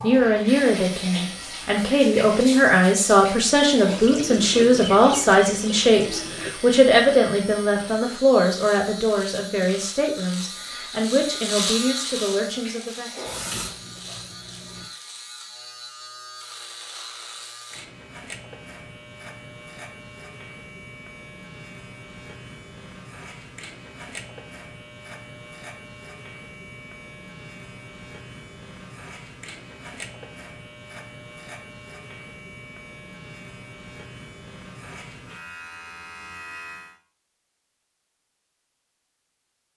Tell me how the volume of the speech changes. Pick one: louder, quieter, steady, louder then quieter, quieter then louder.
quieter.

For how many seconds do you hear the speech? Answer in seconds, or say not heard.
13 s.